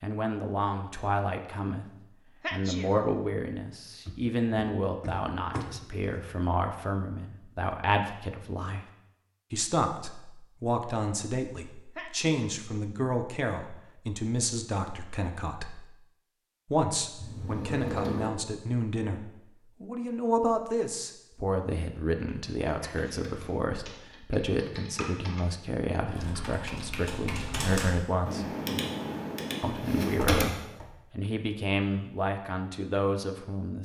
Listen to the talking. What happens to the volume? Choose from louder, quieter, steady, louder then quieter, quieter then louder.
steady.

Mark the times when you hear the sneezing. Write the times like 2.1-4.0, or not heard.
2.4-3.0, 11.9-12.4, 22.8-23.3.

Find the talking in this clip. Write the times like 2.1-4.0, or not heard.
0.0-8.8, 9.5-15.8, 16.6-28.6, 29.6-33.8.